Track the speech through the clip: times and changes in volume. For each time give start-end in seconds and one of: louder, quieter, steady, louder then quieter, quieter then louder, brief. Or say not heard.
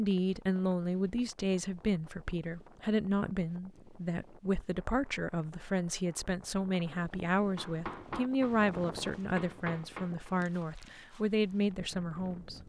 0.0-12.6 steady.